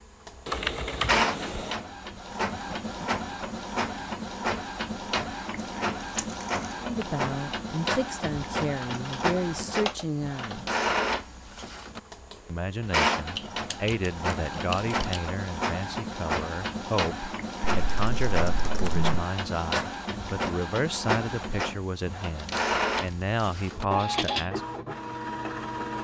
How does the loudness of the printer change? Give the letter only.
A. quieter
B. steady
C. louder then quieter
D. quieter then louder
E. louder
B.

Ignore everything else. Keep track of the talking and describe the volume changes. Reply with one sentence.
The loudness of the talking stays about the same.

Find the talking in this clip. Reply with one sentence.
You can hear the talking from 6.8 to 10.7 s and from 12.4 to 24.6 s.